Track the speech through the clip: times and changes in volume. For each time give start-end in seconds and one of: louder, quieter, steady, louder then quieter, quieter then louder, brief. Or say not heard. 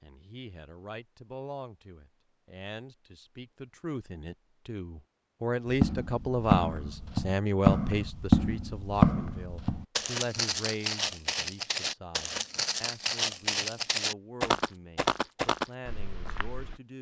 0.0-16.9 louder then quieter.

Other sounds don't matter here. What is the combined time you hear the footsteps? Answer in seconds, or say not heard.
11 s.